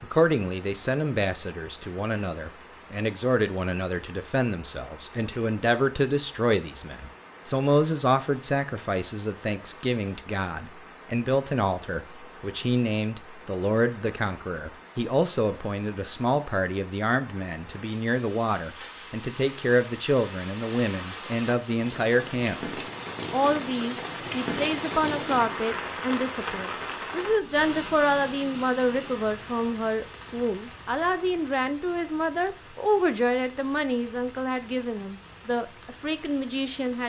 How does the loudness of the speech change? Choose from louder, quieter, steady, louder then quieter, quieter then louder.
steady.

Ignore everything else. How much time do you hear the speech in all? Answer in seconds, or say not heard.
36 s.